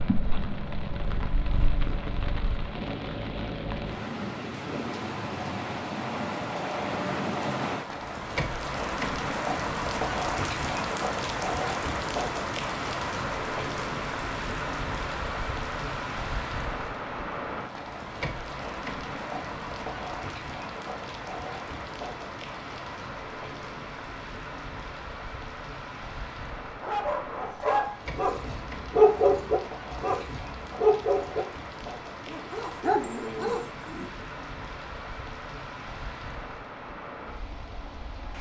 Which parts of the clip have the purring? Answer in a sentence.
You can hear the purring from 0.0 to 2.8 s.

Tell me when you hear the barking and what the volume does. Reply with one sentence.
You can hear the barking from 26.8 to 34.1 s, getting louder then quieter.